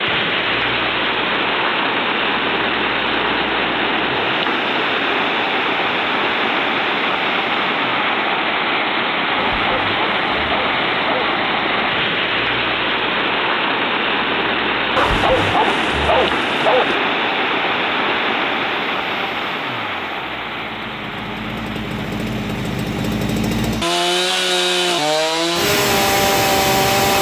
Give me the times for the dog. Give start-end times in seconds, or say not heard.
9.3-11.3, 14.9-16.9.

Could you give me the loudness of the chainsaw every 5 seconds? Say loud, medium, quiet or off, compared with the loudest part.
quiet, quiet, quiet, quiet, medium, loud.